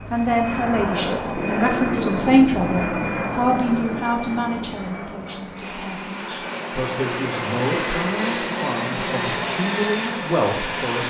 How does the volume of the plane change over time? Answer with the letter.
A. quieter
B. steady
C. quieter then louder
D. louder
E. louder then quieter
C.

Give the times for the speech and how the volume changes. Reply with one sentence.
The speech can be heard from 0.1 to 11.0 s, getting quieter then louder.